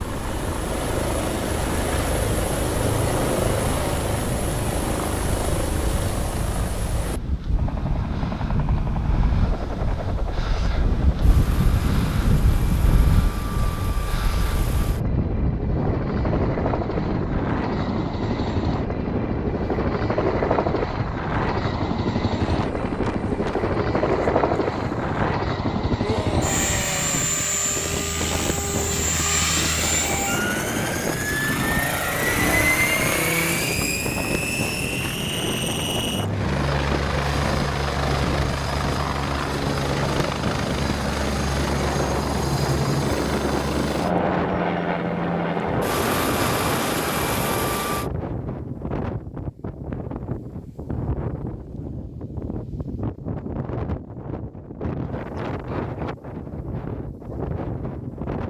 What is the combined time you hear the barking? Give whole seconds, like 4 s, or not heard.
not heard.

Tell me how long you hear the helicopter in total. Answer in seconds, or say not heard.
48 s.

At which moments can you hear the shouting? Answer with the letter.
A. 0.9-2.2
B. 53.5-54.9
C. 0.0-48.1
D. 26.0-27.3
D.